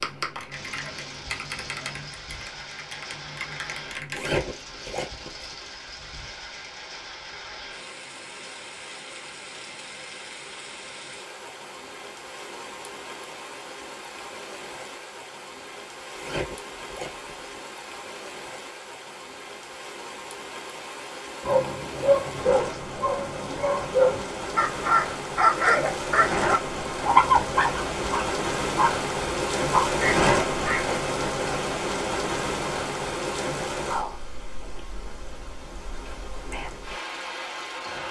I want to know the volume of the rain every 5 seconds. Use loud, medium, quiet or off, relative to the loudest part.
quiet, quiet, quiet, quiet, medium, loud, loud, medium.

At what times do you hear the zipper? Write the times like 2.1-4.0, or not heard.
4.1-5.5, 16.1-17.6, 30.1-31.1.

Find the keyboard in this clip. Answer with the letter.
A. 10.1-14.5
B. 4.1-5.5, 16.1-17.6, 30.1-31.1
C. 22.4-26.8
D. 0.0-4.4
D.